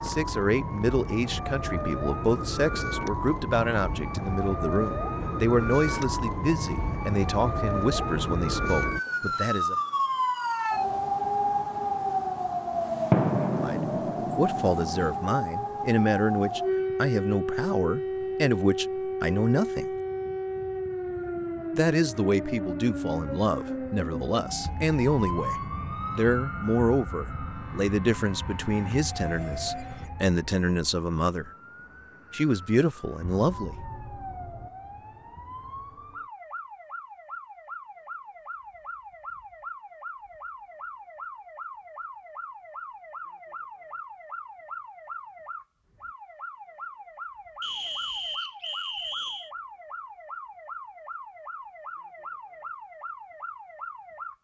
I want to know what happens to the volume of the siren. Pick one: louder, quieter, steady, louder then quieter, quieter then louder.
quieter.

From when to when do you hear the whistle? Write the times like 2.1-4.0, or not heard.
47.6-49.5.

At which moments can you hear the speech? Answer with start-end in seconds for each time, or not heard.
0.0-9.8, 13.6-19.9, 21.8-25.6, 26.1-31.5, 32.3-33.8.